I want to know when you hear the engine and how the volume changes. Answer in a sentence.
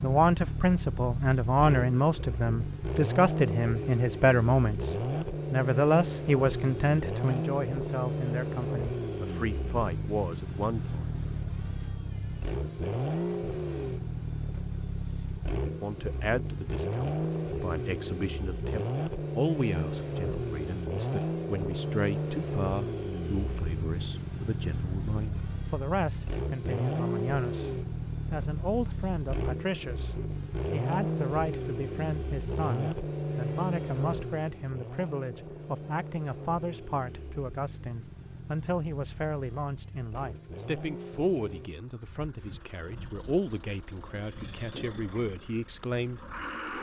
The engine can be heard from 0.0 to 46.7 s, getting quieter.